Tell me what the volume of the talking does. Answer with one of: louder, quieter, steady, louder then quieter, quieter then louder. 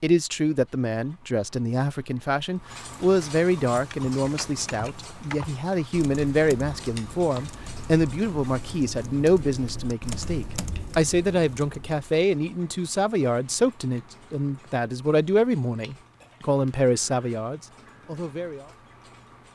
steady.